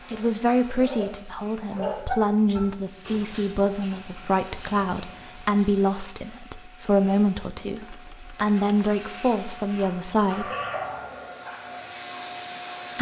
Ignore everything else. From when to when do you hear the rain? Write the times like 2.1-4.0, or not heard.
not heard.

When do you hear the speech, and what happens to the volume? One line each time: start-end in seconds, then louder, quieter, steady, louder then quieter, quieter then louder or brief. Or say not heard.
0.1-10.5 steady.